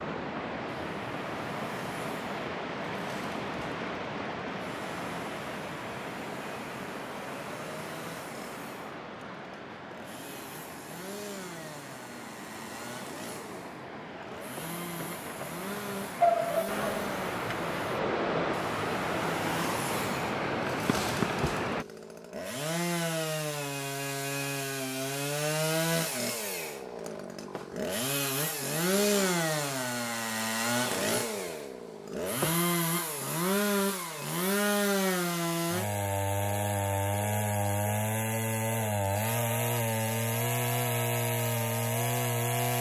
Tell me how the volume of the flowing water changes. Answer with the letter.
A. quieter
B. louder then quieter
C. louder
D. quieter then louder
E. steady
D.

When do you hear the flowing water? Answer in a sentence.
You can hear the flowing water from 0.0 to 21.9 s.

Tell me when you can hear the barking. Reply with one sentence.
The barking can be heard from 16.2 to 17.6 s.